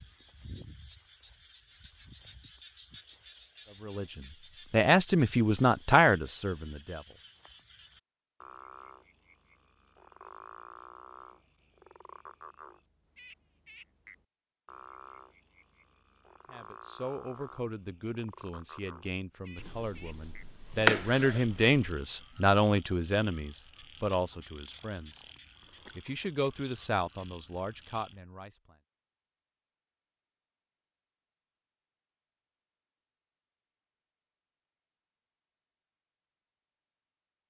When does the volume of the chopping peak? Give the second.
21 s.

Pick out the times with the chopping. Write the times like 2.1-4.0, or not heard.
19.6-21.8.